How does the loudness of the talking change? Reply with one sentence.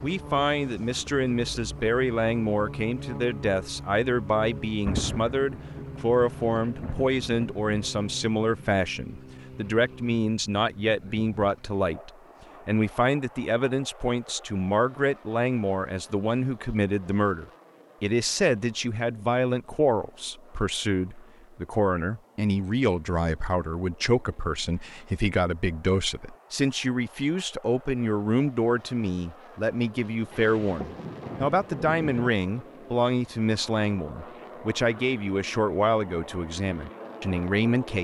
The loudness of the talking stays about the same.